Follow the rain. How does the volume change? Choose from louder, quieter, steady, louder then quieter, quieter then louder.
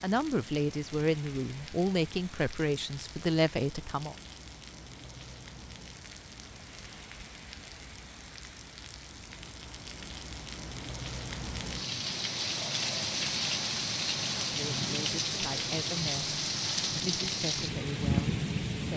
louder.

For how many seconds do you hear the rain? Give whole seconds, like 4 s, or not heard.
19 s.